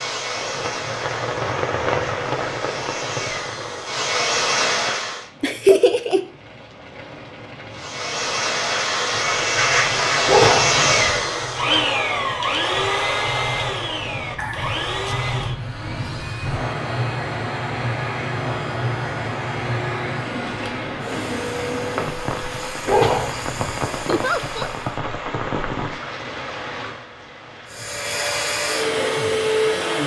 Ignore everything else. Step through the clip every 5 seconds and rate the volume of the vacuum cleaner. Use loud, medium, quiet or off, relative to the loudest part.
medium, loud, loud, quiet, quiet, loud.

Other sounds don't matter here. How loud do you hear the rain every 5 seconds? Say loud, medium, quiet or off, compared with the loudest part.
loud, quiet, medium, loud, loud, loud.